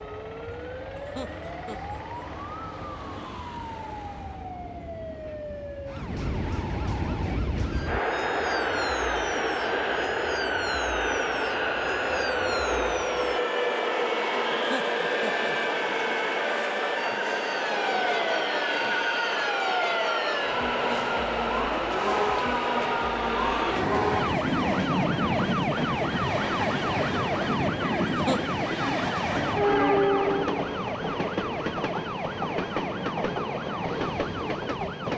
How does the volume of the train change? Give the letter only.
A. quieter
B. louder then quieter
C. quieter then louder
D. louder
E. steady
D.